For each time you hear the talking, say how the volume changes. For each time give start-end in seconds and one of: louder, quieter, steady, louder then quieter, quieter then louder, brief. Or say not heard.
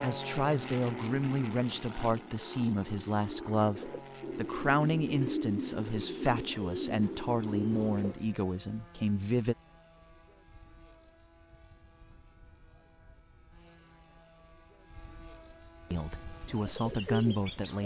0.0-9.6 steady
15.9-17.8 brief.